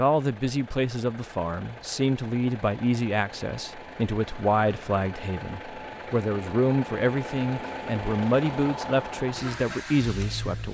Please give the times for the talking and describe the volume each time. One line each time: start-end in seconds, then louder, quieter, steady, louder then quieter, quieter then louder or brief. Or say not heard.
0.0-10.6 steady.